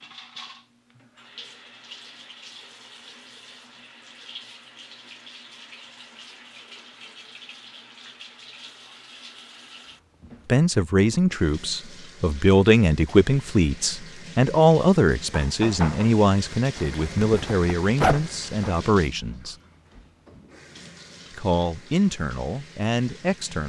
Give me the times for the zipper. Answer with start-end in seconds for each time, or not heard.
16.8-18.7.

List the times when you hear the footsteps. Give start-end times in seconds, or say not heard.
not heard.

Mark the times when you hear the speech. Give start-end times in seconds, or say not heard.
10.4-19.6, 21.4-23.6.